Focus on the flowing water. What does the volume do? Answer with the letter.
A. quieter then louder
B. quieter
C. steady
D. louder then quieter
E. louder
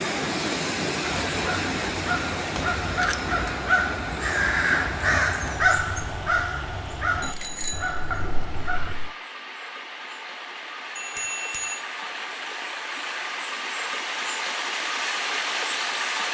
A.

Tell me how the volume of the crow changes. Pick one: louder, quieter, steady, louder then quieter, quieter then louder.
louder then quieter.